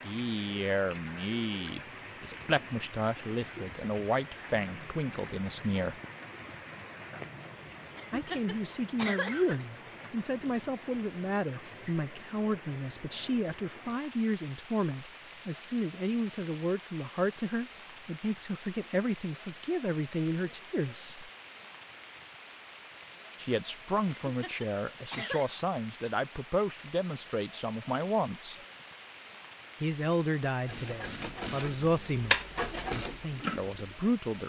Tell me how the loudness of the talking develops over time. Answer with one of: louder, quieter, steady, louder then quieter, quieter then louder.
steady.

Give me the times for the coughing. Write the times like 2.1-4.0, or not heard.
8.0-9.7, 24.2-25.5.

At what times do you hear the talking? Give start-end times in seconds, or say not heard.
0.0-6.0, 8.1-21.3, 23.4-28.6, 29.8-34.4.